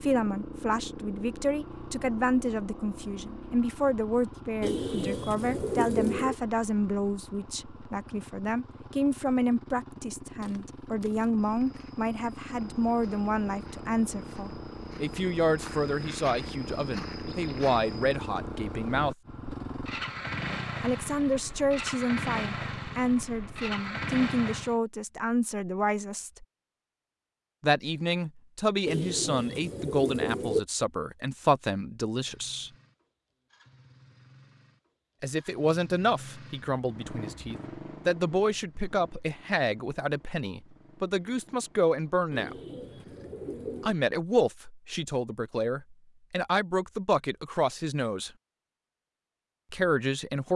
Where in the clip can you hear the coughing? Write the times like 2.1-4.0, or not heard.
not heard.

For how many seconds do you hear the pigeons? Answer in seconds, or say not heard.
5 s.